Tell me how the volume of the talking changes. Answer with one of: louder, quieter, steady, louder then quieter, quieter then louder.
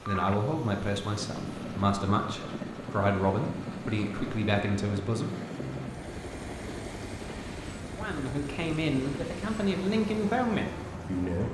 steady.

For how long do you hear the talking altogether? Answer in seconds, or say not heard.
9 s.